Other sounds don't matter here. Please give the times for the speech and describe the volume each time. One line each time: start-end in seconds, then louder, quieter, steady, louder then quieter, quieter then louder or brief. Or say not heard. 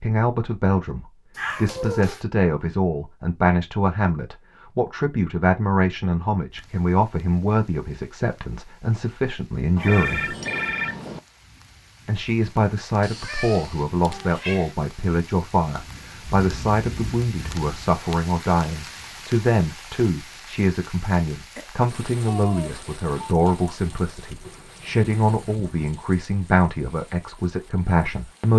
0.0-10.3 steady
12.1-28.5 steady.